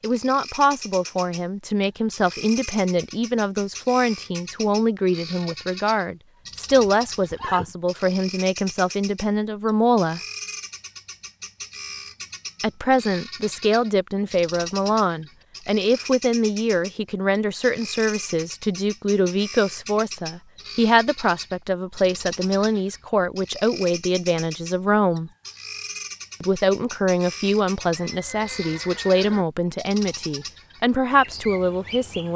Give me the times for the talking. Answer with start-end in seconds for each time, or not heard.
0.0-10.2, 12.6-25.3, 26.4-32.3.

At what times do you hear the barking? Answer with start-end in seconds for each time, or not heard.
not heard.